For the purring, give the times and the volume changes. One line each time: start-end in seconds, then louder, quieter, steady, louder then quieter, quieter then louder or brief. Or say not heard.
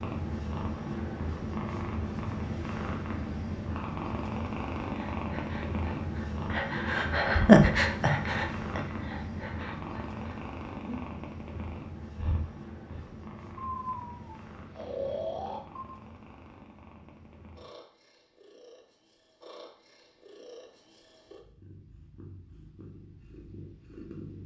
0.0-24.4 quieter.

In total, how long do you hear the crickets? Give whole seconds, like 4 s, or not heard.
not heard.